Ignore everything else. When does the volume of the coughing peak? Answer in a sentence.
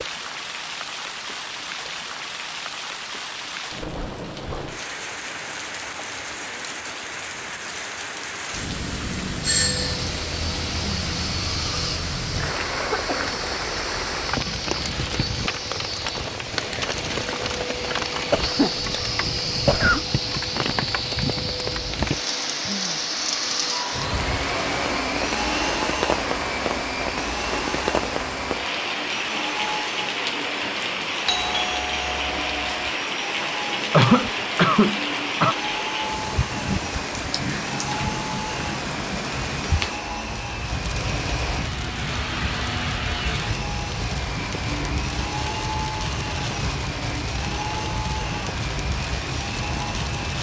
The loudest moment of the coughing is at 34 seconds.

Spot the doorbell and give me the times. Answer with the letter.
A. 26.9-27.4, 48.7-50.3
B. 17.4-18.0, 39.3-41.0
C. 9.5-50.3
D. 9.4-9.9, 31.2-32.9
D.